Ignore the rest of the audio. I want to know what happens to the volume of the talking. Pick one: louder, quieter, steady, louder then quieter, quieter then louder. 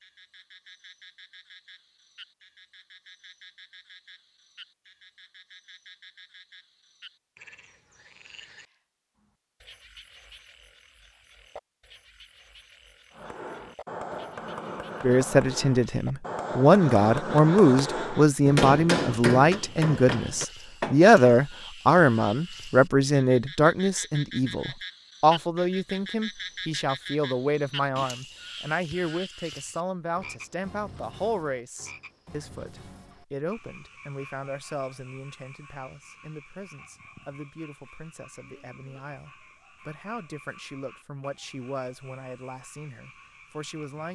quieter.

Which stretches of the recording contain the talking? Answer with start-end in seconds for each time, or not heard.
15.0-44.1.